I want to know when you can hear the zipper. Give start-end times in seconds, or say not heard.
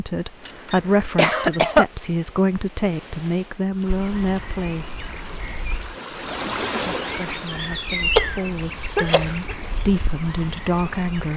not heard.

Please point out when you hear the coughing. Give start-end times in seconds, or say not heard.
0.5-1.9, 8.9-9.6.